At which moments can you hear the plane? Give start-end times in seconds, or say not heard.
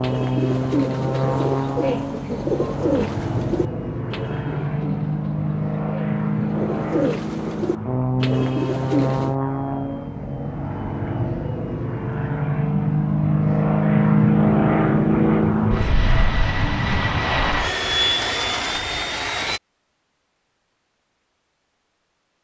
0.0-19.6.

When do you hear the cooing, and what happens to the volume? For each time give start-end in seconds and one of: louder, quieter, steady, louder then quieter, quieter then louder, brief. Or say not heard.
0.0-9.3 quieter then louder.